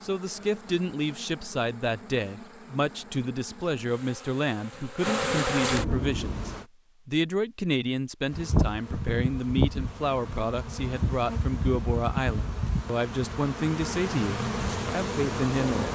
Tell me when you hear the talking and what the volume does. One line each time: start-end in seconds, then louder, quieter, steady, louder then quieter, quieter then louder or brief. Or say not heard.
0.0-15.9 steady.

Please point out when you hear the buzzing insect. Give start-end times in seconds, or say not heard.
0.0-6.7, 8.3-15.9.